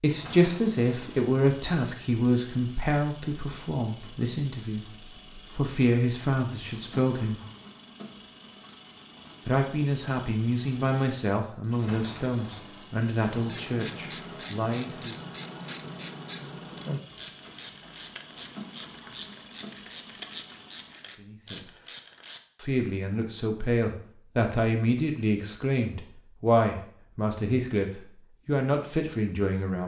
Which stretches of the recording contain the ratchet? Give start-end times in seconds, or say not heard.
13.3-22.4.